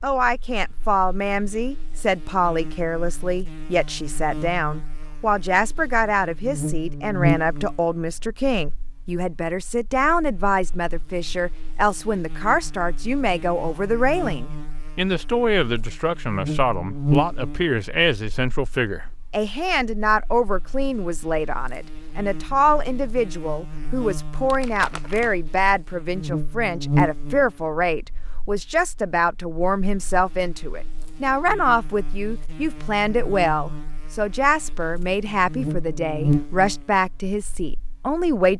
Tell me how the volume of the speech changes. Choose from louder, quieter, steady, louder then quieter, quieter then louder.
steady.